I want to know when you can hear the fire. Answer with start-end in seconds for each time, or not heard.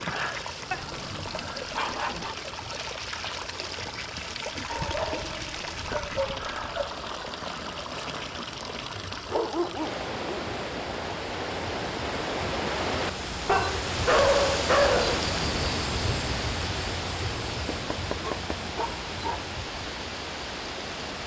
not heard.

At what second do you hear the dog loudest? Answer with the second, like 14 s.
14 s.